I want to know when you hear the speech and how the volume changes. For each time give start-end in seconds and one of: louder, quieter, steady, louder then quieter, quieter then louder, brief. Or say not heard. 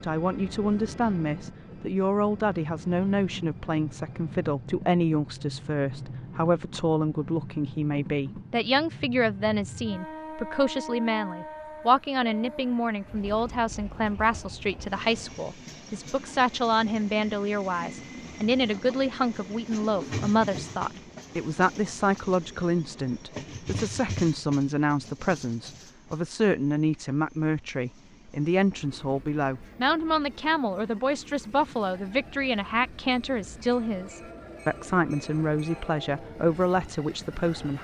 0.0-37.7 steady.